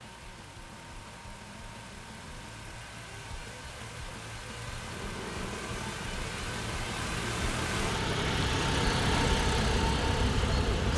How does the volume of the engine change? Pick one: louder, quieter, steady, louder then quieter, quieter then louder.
louder.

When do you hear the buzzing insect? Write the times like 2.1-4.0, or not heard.
4.8-10.9.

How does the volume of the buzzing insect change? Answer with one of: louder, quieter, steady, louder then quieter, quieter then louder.
louder.